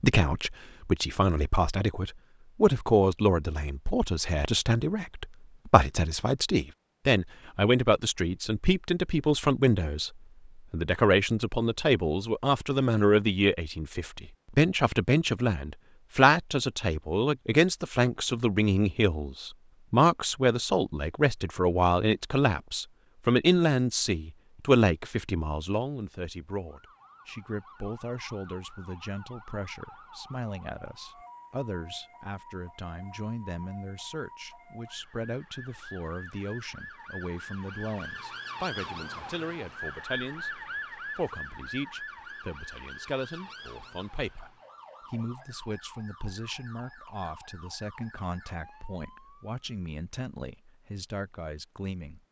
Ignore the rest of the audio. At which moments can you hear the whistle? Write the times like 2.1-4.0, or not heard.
not heard.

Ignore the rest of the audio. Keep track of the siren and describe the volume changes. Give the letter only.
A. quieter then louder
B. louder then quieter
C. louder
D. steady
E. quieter
B.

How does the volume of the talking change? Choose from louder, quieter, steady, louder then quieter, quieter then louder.
quieter.